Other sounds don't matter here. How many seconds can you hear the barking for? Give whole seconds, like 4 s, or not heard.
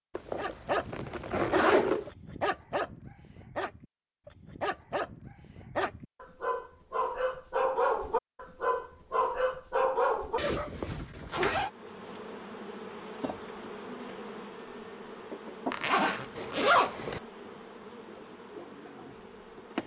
10 s.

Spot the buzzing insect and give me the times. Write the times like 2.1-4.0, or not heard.
11.6-19.8.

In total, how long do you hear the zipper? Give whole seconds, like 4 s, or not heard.
5 s.